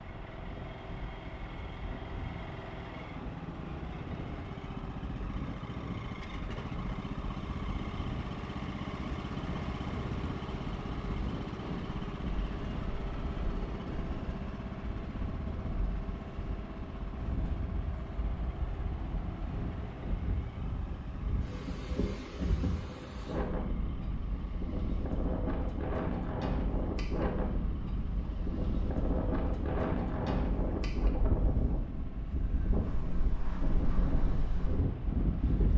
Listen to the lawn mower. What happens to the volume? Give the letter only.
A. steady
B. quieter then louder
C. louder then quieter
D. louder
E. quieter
E.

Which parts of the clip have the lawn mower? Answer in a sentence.
The lawn mower can be heard from 0.0 to 35.7 s.